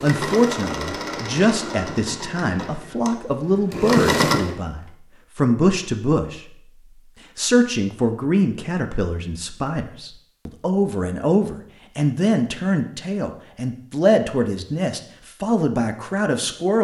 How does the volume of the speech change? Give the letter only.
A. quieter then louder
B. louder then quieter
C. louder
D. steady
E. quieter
D.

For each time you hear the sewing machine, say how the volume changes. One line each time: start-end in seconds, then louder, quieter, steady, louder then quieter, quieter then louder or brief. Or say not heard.
0.0-4.6 quieter then louder.